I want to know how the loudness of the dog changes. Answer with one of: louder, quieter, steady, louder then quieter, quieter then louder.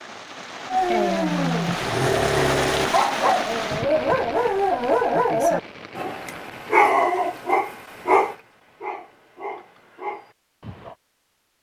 quieter.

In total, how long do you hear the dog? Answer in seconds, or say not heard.
10 s.